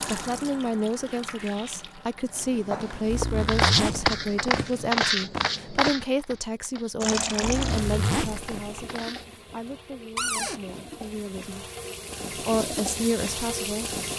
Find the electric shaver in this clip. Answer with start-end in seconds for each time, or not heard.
not heard.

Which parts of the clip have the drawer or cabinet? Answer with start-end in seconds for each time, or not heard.
10.2-10.6.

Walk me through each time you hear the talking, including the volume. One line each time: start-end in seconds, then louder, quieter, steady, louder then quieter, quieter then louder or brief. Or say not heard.
0.0-11.7 quieter
12.3-13.9 brief.